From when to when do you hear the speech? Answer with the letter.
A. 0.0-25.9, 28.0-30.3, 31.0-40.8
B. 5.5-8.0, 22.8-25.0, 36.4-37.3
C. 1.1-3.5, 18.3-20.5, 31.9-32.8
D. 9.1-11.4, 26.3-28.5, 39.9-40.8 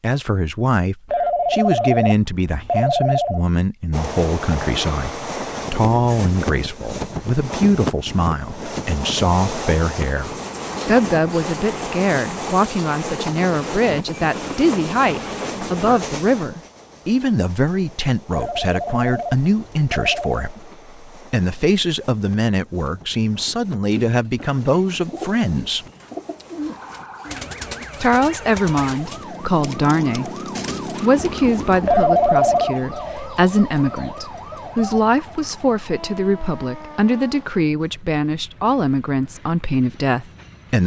A.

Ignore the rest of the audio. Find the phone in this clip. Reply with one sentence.
The phone can be heard from 1.1 to 3.5 s, from 18.3 to 20.5 s and from 31.9 to 32.8 s.